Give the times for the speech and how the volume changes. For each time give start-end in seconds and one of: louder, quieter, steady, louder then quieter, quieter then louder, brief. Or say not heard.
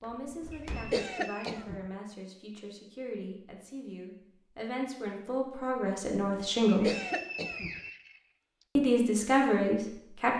0.0-6.9 louder
8.8-10.3 brief.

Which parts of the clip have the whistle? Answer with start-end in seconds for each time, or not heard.
0.5-1.6, 6.8-8.7.